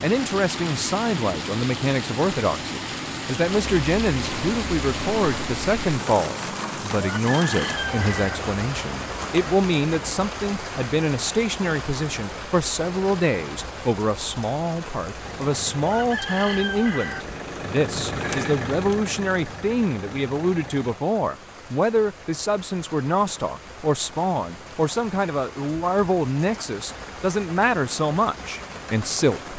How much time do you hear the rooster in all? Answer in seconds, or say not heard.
3 s.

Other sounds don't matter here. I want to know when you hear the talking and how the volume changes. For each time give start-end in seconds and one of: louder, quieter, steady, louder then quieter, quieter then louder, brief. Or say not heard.
0.0-29.5 steady.